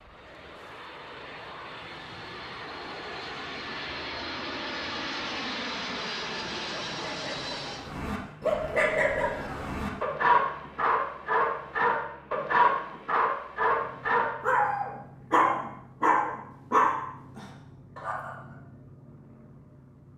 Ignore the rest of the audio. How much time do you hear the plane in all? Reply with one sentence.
You can hear the plane for 20 seconds altogether.